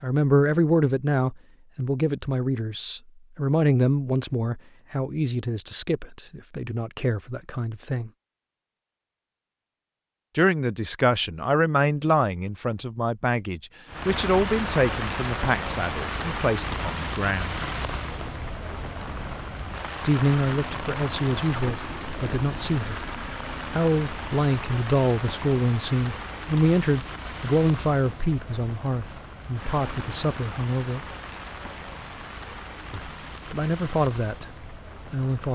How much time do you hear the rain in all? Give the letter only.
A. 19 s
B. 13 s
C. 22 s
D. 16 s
C.